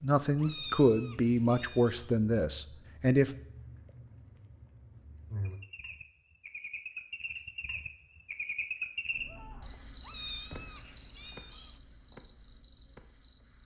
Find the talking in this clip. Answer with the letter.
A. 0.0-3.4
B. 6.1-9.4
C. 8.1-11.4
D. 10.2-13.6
A.